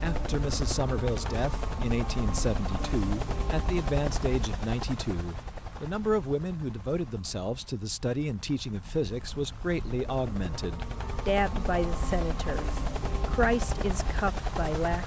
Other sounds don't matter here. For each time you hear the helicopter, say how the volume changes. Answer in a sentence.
You can hear the helicopter from 0.0 to 15.0 s, getting quieter then louder.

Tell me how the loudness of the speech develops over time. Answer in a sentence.
The volume of the speech stays about the same.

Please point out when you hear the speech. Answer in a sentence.
You can hear the speech from 0.0 to 15.0 s.